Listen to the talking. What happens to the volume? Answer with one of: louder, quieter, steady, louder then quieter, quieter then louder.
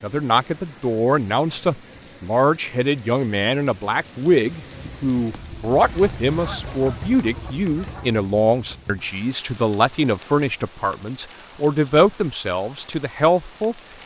steady.